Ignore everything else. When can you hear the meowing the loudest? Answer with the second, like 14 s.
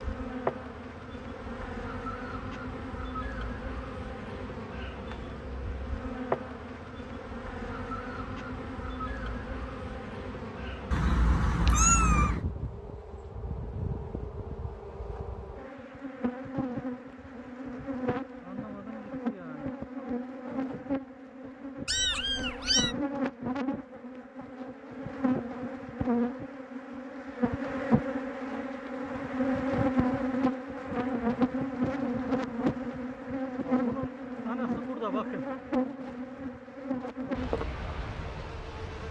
12 s.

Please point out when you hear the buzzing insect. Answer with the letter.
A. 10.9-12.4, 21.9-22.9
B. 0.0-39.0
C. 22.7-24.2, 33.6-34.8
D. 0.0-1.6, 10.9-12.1
B.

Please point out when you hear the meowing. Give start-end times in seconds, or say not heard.
10.9-12.4, 21.9-22.9.